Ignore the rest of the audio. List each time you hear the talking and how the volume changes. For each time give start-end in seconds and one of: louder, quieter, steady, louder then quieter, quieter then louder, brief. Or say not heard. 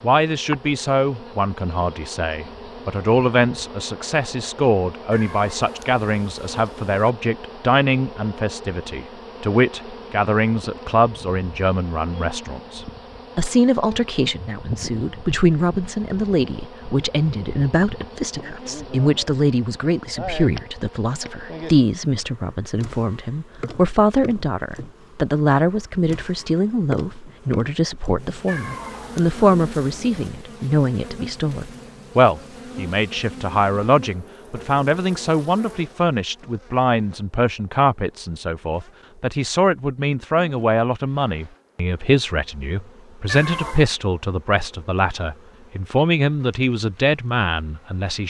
0.0-48.2 steady.